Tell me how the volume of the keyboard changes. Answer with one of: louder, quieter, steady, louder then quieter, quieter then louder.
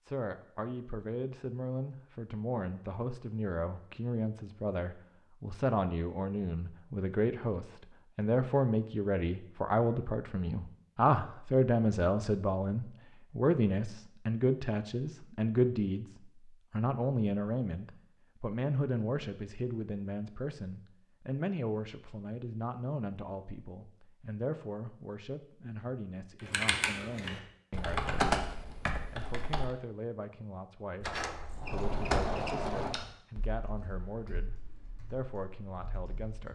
quieter.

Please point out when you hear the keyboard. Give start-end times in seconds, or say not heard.
26.4-29.7, 31.9-36.5.